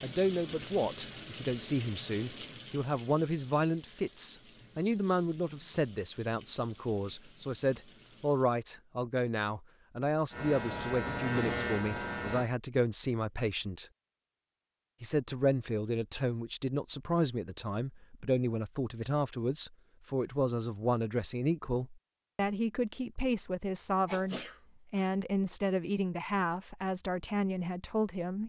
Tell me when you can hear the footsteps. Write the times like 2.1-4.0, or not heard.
not heard.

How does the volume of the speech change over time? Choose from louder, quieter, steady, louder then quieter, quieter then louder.
steady.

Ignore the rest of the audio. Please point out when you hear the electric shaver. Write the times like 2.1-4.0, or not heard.
10.3-12.5.